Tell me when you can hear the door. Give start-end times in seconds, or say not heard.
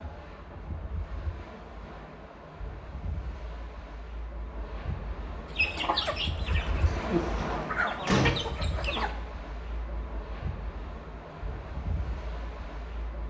6.8-8.3.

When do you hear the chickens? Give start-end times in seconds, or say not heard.
5.5-9.1.